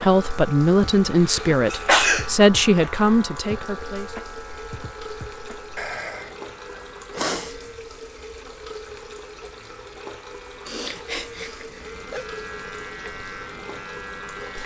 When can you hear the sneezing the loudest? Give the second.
2 s.